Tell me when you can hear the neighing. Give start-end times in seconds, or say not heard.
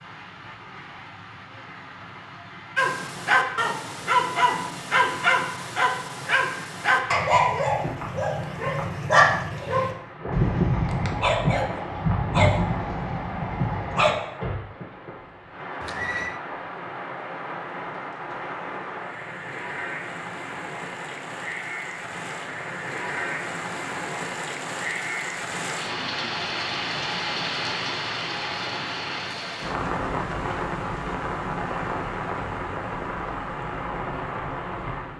15.8-16.4.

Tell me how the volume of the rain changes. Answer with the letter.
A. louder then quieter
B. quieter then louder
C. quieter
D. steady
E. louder
E.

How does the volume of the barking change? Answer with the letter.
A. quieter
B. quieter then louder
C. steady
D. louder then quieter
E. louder
C.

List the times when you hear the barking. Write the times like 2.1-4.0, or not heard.
2.8-14.2.